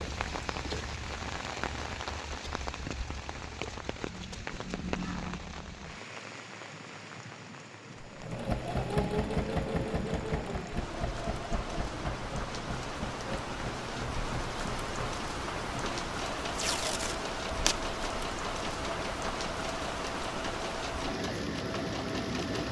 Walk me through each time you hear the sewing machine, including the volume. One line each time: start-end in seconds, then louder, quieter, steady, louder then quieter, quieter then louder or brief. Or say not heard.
8.0-22.6 quieter.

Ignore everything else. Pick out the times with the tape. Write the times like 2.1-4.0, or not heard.
16.6-17.9.